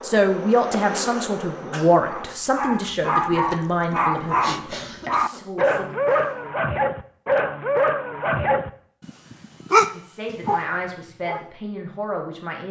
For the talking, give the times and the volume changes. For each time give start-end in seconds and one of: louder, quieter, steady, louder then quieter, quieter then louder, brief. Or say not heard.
0.0-6.0 quieter
9.9-12.6 brief.